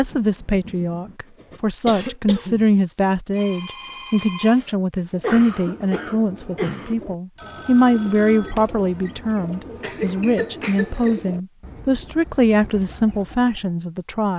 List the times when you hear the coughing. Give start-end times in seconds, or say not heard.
1.7-2.8, 5.0-7.0, 9.8-11.2.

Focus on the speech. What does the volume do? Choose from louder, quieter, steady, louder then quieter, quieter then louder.
steady.